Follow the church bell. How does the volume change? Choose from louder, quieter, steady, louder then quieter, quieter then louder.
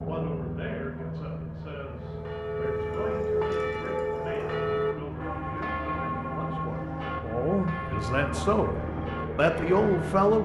quieter.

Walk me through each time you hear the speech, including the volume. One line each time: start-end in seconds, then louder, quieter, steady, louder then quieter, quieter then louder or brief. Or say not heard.
0.0-8.8 louder
9.3-10.3 brief.